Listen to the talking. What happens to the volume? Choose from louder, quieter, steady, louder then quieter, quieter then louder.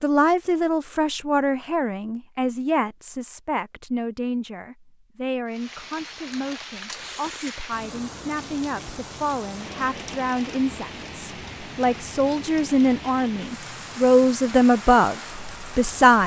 quieter then louder.